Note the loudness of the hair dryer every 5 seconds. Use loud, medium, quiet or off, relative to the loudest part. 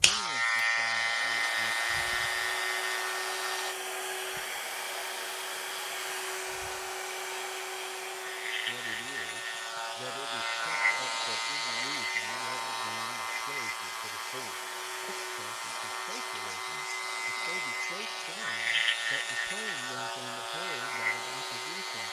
loud, loud, medium, medium, medium.